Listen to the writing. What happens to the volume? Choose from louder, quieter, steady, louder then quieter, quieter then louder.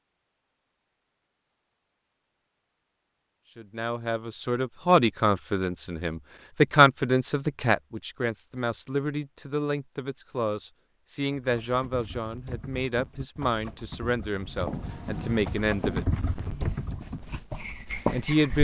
quieter then louder.